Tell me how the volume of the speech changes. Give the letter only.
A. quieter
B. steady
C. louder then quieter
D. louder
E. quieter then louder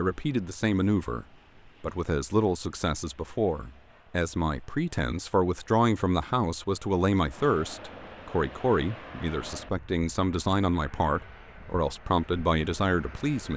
B.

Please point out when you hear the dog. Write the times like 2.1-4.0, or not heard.
not heard.